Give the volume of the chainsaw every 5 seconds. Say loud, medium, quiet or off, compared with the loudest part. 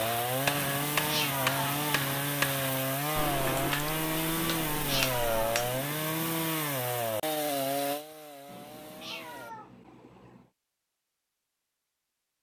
loud, loud, off.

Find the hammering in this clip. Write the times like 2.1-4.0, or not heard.
0.0-5.8.